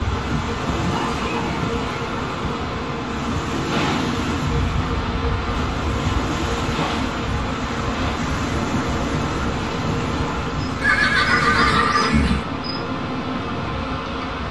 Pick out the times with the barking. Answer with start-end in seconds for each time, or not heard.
not heard.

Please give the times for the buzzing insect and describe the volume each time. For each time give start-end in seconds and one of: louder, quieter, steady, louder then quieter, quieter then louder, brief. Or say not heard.
0.0-14.4 steady.